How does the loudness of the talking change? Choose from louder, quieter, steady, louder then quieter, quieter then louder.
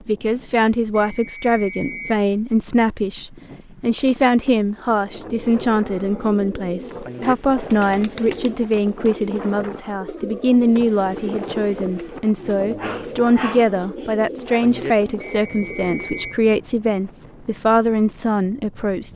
steady.